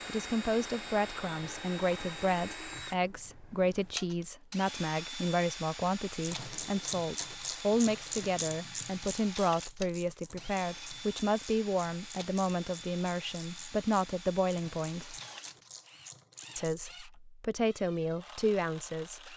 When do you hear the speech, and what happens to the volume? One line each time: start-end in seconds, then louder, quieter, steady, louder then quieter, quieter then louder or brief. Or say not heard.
0.1-15.2 steady
16.6-19.3 brief.